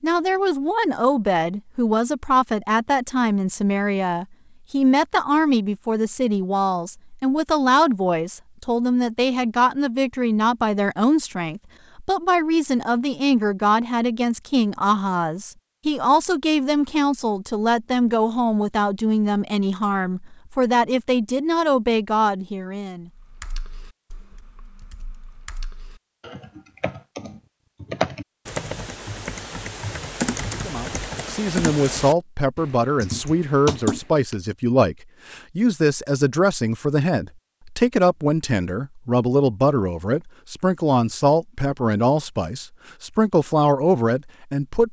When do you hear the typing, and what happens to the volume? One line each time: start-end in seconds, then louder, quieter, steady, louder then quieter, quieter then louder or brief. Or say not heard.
23.1-34.4 louder.